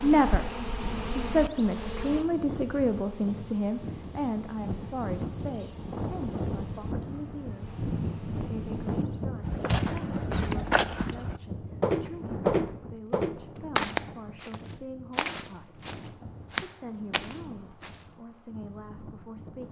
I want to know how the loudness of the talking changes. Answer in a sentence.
The volume of the talking goes down.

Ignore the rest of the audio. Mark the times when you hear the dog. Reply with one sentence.
The dog can't be heard in this clip.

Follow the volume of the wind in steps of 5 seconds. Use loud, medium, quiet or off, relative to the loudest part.
medium, loud, medium, quiet.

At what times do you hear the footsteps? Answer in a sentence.
You can hear the footsteps from 9.4 to 18.1 s.